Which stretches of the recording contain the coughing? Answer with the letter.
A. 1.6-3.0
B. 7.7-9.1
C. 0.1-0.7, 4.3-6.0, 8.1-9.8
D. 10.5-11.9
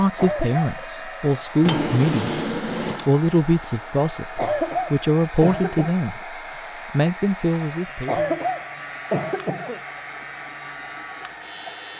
C.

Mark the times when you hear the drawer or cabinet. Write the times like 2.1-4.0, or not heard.
1.6-3.0.